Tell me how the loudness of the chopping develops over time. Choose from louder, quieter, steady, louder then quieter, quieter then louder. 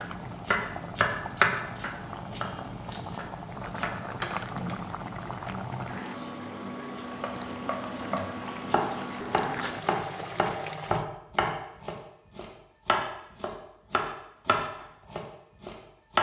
quieter then louder.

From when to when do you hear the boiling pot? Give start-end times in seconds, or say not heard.
0.0-11.1.